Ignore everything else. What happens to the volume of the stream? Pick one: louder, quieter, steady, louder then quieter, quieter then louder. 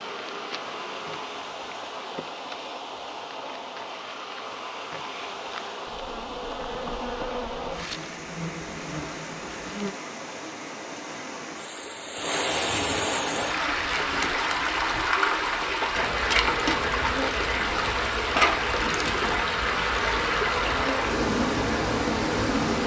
louder.